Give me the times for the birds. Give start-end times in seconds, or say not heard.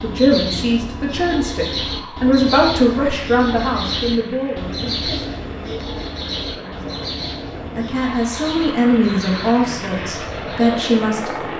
0.0-11.5.